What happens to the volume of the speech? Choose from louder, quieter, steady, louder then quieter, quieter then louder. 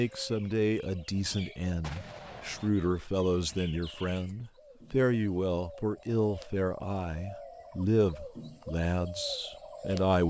steady.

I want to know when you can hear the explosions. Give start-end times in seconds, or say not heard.
1.8-2.7.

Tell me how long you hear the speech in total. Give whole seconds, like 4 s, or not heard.
10 s.